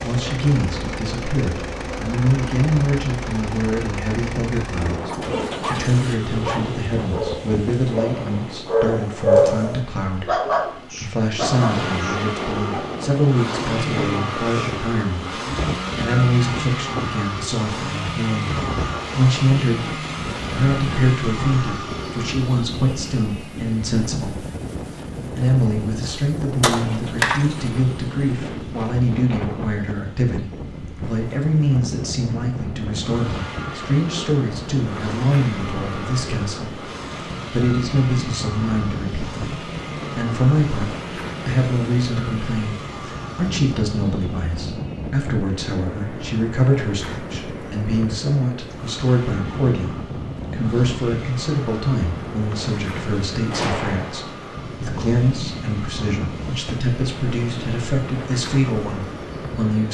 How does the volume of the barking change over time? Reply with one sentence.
The loudness of the barking goes up, then down.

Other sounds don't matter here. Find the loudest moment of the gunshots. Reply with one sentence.
The loudest moment of the gunshots is at 27 seconds.